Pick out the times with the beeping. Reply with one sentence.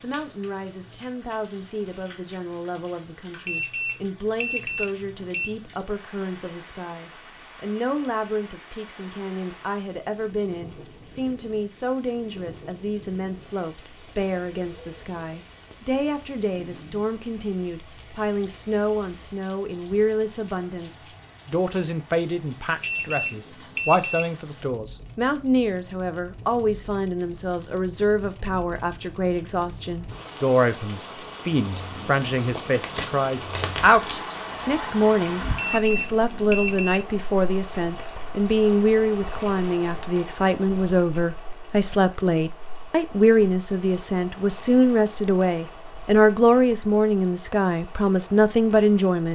The beeping can be heard from 3.5 to 5.5 s, from 22.8 to 24.3 s and from 35.5 to 37.0 s.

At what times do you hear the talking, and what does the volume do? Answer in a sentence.
You can hear the talking from 0.0 to 49.3 s, getting louder.